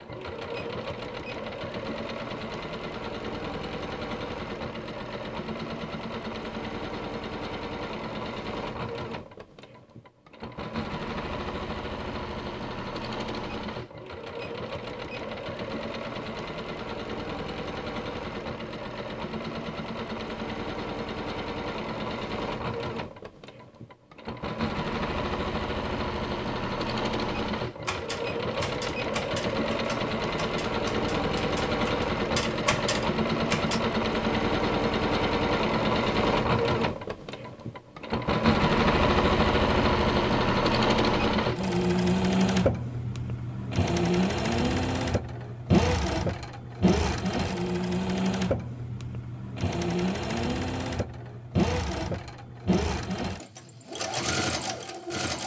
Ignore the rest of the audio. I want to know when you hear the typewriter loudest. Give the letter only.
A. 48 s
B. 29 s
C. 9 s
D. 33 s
D.